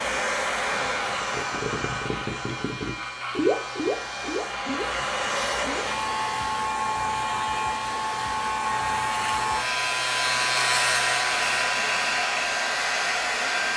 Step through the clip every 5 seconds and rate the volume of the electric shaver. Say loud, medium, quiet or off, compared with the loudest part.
medium, medium, loud.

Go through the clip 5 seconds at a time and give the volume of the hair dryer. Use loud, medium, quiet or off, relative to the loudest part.
medium, loud, loud.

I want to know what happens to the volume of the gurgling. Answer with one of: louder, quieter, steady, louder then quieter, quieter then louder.
louder then quieter.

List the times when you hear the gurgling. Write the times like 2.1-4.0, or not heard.
1.0-6.0.